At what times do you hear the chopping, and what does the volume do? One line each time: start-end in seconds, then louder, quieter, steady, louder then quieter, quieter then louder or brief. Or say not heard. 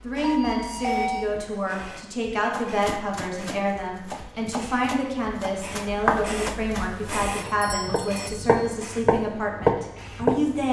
2.5-10.6 louder.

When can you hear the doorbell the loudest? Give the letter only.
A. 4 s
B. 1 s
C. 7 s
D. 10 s
B.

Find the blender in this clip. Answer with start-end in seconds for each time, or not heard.
not heard.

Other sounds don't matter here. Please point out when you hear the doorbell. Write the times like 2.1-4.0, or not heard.
0.2-1.3, 7.3-8.6.